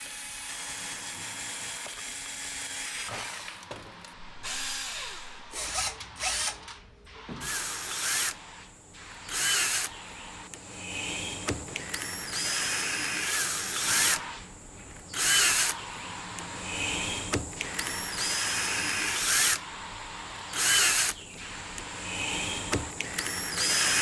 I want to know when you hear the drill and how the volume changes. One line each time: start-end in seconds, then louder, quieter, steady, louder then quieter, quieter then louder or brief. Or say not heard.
0.0-23.9 louder.